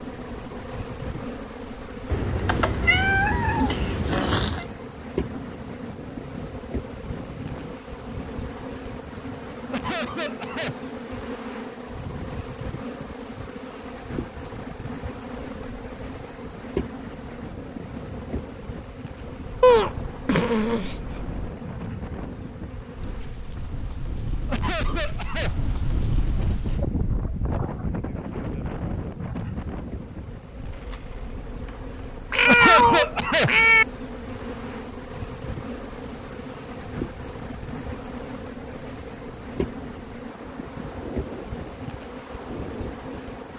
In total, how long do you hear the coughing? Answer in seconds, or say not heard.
3 s.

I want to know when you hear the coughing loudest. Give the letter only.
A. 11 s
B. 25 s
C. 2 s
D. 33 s
D.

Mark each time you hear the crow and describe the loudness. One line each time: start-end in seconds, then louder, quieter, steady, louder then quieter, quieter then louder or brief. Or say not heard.
not heard.